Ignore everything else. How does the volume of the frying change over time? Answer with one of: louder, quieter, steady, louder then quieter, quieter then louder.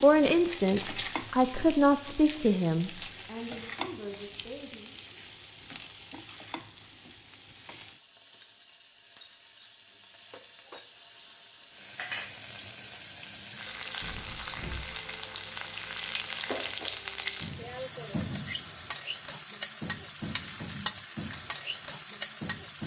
quieter then louder.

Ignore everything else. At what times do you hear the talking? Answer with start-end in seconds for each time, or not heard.
0.0-5.0.